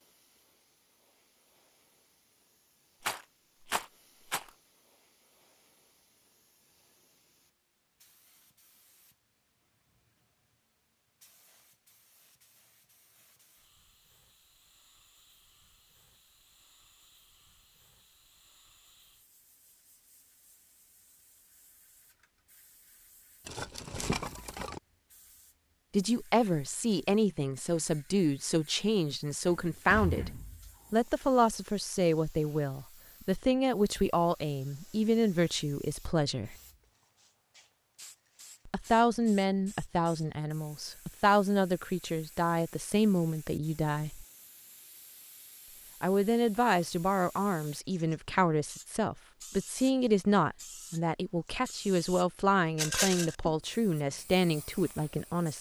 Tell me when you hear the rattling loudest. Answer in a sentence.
The loudest moment of the rattling is at 53 seconds.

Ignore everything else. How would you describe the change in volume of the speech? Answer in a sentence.
The loudness of the speech stays about the same.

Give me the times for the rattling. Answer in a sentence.
You can hear the rattling from 3.0 to 4.5 s, from 23.4 to 24.8 s and from 52.8 to 53.4 s.